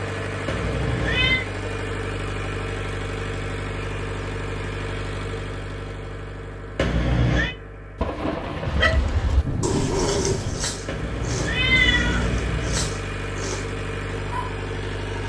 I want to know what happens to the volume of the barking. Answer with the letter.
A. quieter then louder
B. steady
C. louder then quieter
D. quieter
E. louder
D.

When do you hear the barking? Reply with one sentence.
The barking can be heard from 8.7 to 14.6 s.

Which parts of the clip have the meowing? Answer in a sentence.
The meowing can be heard from 0.5 to 1.4 s, from 6.8 to 7.5 s and from 10.8 to 12.9 s.